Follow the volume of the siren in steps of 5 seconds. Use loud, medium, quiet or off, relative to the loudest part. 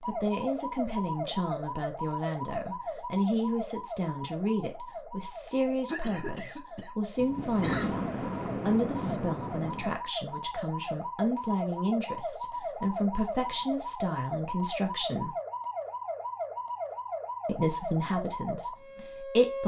loud, medium, loud, loud.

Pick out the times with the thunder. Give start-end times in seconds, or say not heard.
7.2-9.9.